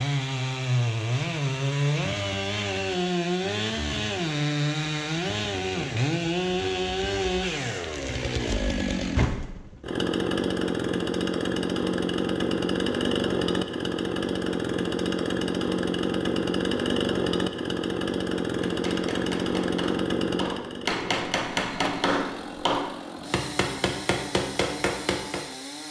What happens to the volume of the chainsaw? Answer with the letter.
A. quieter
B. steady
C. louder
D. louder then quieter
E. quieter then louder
A.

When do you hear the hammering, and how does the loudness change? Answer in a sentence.
The hammering can be heard from 18.6 to 25.4 s, getting louder.